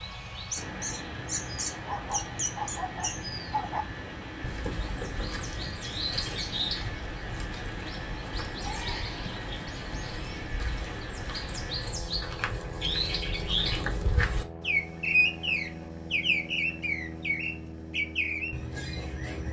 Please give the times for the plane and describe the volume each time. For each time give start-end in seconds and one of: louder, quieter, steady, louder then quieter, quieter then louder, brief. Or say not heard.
0.0-19.4 steady.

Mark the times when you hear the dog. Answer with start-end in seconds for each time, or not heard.
1.8-3.9.